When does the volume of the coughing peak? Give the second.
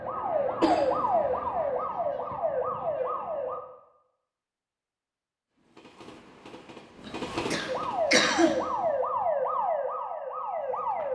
8 s.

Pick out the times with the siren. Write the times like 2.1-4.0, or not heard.
0.0-3.6, 7.7-11.1.